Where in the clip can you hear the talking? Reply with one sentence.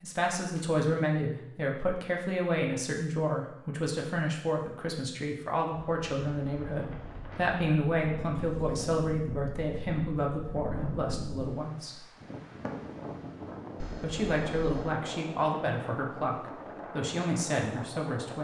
You can hear the talking from 0.0 to 12.1 s and from 14.0 to 18.4 s.